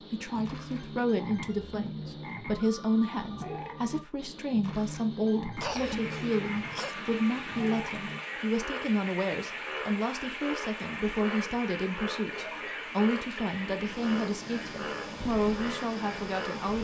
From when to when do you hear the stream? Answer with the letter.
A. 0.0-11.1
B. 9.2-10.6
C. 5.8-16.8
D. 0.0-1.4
C.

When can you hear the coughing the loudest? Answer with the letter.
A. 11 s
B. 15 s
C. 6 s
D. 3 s
C.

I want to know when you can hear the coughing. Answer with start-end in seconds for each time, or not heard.
5.6-7.0.